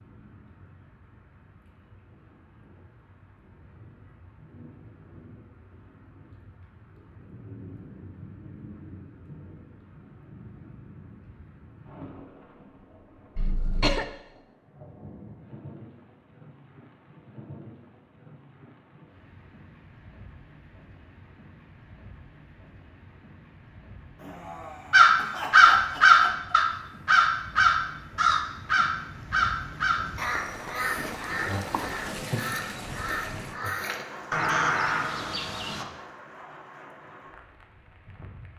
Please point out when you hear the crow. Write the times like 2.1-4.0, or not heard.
24.9-35.9.